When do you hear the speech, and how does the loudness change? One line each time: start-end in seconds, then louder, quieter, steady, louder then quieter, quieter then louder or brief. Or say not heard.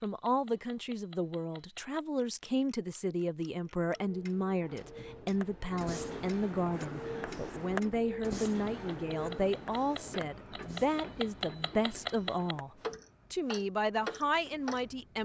0.0-12.7 steady
13.3-15.2 brief.